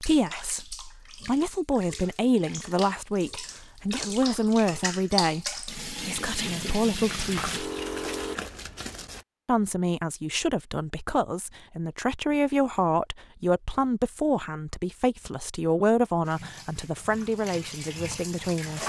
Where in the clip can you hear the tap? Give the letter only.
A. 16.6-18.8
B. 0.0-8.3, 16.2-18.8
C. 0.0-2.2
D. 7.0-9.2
B.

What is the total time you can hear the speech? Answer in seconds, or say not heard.
17 s.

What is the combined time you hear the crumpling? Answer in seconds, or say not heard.
2 s.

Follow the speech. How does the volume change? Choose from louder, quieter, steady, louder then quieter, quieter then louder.
steady.